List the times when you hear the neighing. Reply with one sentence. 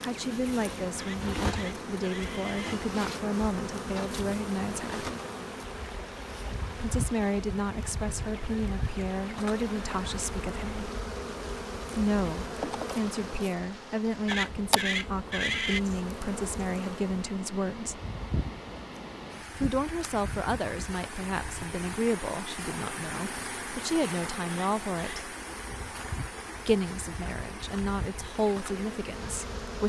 The neighing can be heard from 0.9 to 2.8 s, from 14.2 to 15.8 s and from 24.4 to 25.2 s.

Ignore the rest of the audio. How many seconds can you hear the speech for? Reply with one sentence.
The speech can be heard for 24 seconds in total.